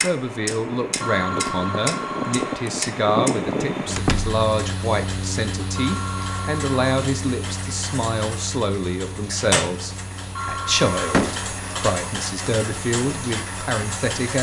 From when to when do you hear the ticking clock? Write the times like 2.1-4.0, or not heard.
0.0-14.3.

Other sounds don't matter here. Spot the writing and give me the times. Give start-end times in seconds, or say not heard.
not heard.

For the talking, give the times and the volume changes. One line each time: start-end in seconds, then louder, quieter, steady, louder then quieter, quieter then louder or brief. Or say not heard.
0.0-14.3 steady.